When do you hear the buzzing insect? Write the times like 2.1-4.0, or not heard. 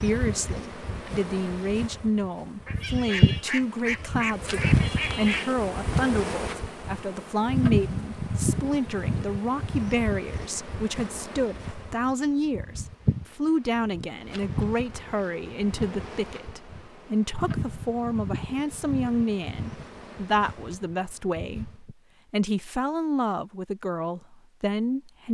0.0-21.9.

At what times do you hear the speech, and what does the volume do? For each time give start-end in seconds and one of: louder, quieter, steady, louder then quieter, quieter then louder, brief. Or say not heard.
0.0-25.2 steady.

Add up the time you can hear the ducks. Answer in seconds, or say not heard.
3 s.